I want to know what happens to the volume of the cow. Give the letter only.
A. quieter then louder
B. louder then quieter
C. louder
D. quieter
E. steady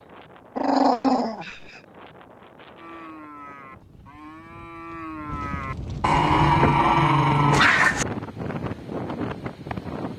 C.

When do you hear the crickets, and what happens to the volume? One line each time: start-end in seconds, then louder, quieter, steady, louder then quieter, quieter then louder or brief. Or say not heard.
not heard.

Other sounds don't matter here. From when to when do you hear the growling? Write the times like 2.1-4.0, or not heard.
0.6-1.7, 6.0-8.1.